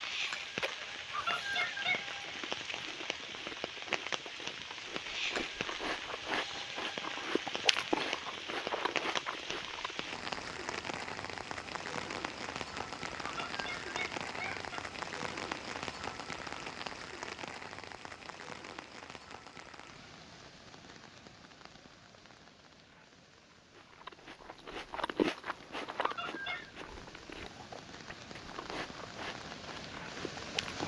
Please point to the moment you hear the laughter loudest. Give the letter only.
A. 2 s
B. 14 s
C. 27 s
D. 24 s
A.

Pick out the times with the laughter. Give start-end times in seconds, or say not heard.
1.1-2.4, 13.2-14.8, 26.0-26.7.